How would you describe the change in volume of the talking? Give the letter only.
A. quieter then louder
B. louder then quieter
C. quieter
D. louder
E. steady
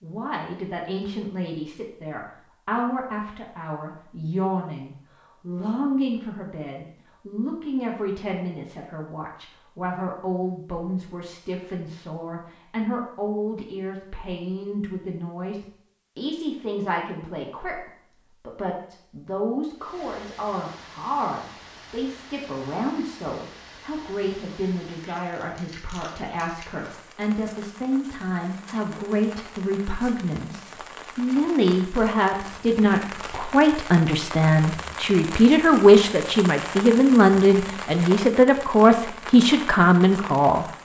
D.